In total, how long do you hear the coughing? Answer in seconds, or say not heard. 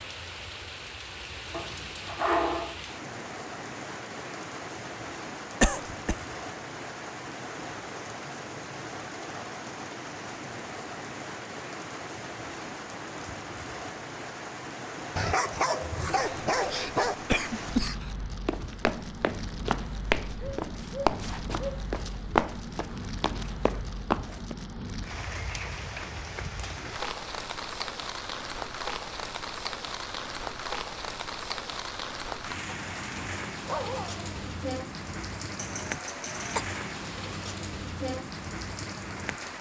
4 s.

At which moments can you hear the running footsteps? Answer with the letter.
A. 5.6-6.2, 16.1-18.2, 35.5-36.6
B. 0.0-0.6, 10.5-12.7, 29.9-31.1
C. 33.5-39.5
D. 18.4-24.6
D.